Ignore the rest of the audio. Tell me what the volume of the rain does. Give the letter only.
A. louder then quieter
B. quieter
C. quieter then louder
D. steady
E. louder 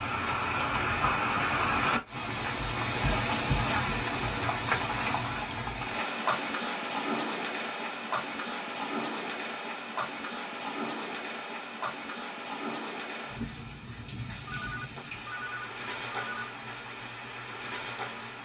B.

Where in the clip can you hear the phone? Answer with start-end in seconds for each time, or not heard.
14.4-16.5.